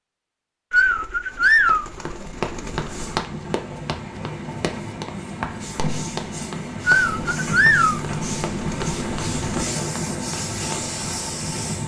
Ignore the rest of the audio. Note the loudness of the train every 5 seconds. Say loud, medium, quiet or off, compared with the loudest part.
medium, loud, loud.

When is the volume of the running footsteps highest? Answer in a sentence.
The volume of the running footsteps peaks at 3 seconds.